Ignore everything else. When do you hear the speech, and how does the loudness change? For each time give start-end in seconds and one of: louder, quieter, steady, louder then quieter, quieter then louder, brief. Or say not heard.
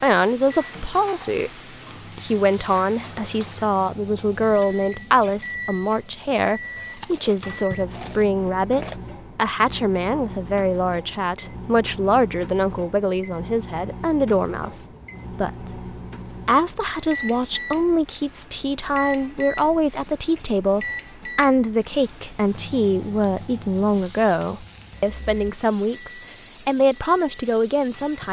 0.0-1.5 brief
2.1-15.8 steady
16.4-28.2 steady.